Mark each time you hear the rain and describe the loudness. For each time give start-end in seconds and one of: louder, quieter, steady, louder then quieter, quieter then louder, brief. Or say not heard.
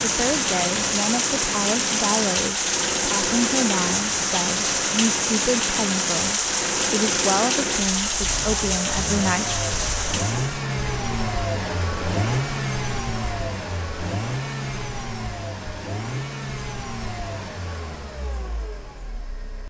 0.0-10.7 steady.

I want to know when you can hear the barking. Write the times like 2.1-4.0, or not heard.
not heard.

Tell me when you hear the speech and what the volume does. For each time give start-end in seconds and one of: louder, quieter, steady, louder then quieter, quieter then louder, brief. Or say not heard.
0.0-10.2 steady.